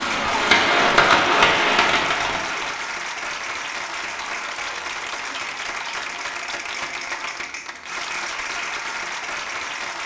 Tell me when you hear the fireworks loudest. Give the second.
1 s.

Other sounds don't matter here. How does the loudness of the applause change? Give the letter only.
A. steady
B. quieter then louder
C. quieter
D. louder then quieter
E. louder
A.